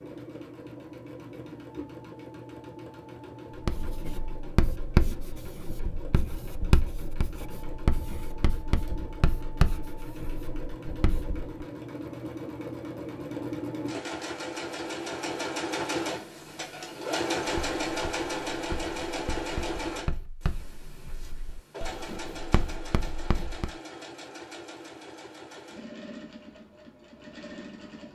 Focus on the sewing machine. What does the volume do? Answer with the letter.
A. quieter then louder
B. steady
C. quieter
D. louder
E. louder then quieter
E.